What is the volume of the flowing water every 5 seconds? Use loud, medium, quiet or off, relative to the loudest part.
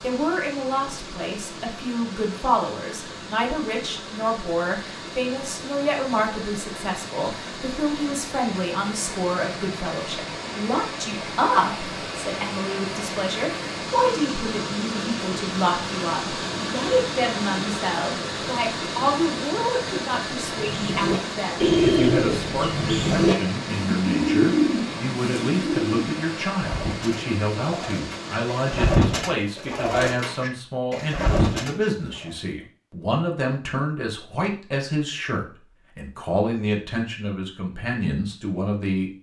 medium, medium, loud, loud, loud, medium, off, off.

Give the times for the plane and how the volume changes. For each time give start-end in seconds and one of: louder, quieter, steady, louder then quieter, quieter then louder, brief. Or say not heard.
not heard.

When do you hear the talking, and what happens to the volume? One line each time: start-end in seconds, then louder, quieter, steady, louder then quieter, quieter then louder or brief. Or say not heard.
0.0-39.1 steady.